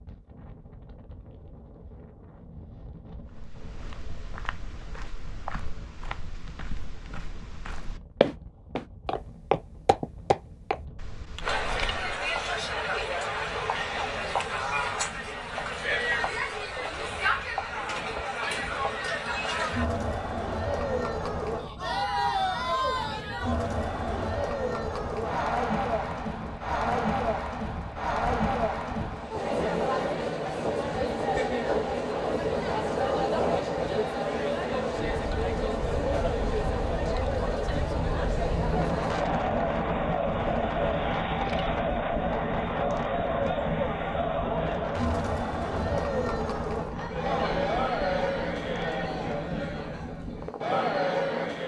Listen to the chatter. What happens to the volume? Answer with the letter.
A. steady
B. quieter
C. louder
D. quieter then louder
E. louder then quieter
A.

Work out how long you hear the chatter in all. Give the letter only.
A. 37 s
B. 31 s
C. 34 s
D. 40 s
D.